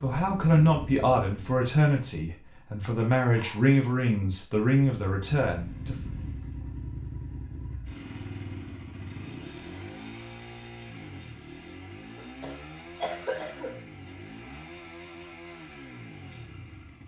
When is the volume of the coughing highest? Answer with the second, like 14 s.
13 s.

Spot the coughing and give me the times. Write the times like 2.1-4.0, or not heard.
3.0-4.2, 12.2-13.8.